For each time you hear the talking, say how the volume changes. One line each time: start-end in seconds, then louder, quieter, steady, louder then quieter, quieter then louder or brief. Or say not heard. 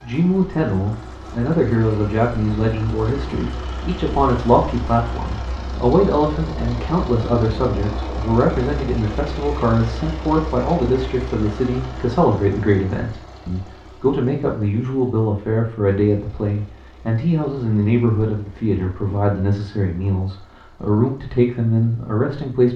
0.0-22.7 steady.